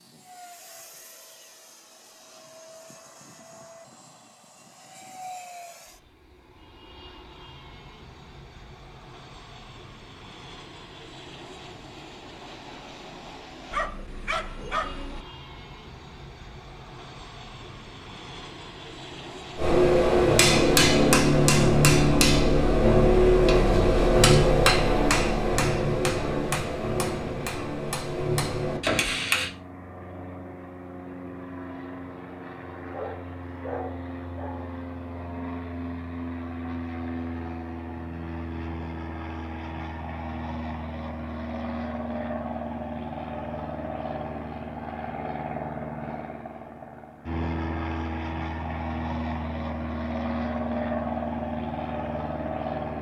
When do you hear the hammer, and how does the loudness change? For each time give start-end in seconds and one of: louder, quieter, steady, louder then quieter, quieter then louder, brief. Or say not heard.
19.6-29.5 quieter.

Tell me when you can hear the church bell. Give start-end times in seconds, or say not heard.
not heard.